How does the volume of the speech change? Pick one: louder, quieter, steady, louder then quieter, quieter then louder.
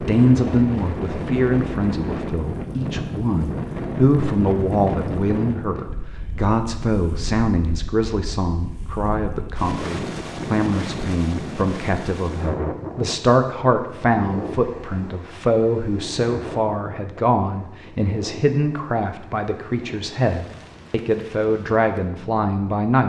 steady.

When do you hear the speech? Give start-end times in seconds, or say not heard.
0.0-23.0.